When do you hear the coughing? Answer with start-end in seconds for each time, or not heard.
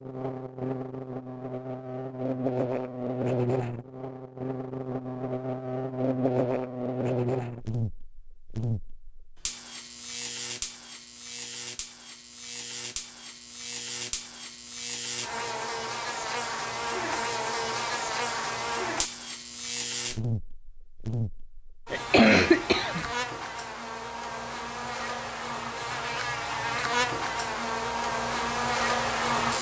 21.9-23.1.